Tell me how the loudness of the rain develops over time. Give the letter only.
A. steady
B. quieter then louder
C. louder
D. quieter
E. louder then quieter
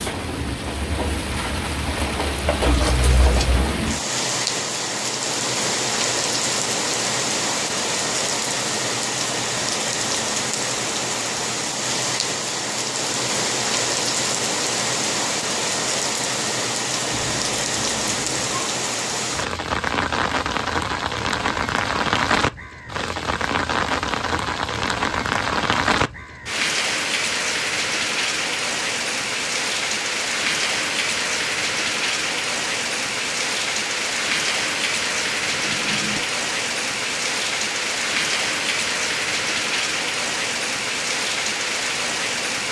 A.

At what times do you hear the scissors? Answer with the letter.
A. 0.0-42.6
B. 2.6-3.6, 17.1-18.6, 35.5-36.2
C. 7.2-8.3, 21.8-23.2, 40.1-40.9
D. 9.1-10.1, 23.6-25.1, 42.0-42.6
B.